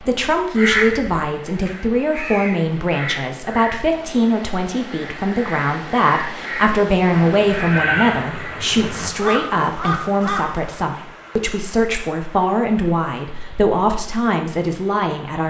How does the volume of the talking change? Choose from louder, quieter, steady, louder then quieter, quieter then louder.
steady.